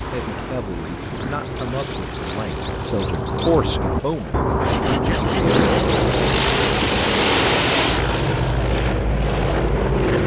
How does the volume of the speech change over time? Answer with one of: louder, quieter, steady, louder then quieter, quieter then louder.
louder then quieter.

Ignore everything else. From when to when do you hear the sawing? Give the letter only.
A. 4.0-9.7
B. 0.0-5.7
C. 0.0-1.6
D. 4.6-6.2
D.